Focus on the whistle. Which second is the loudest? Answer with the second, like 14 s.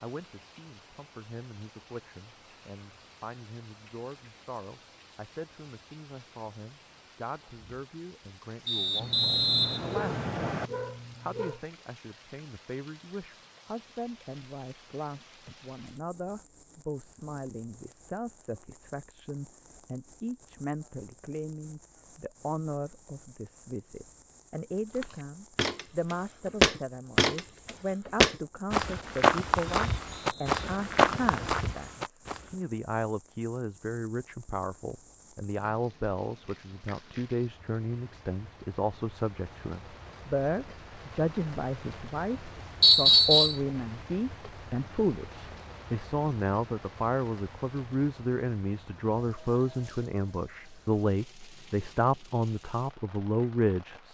43 s.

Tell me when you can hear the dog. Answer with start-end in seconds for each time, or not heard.
8.9-11.6.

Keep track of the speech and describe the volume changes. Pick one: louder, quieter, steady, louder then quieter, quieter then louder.
louder.